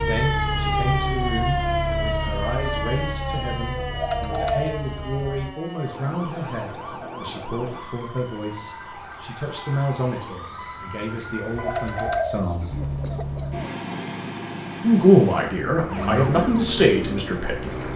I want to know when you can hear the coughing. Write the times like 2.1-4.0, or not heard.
12.6-13.8.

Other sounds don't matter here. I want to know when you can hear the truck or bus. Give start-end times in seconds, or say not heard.
0.0-5.5, 12.7-17.9.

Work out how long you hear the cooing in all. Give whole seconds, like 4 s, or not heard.
3 s.